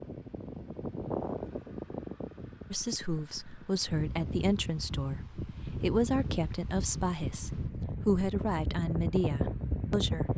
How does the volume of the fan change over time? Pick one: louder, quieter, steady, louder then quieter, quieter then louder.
quieter then louder.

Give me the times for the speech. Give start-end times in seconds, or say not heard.
2.7-10.2.